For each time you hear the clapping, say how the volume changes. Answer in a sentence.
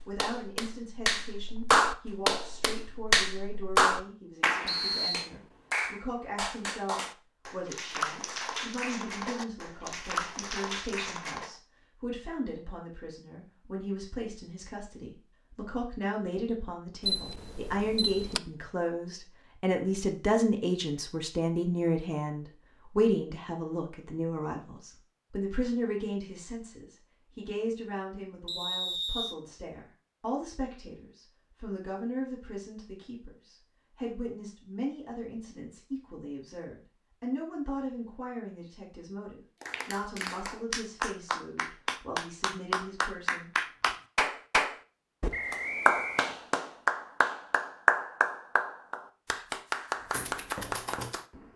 The clapping can be heard from 0.0 to 11.6 s, getting quieter; and from 39.6 to 51.2 s, getting louder then quieter.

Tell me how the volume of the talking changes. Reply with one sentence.
The loudness of the talking goes up, then down.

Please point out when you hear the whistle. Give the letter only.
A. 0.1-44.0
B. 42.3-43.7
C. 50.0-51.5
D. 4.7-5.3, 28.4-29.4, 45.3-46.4
D.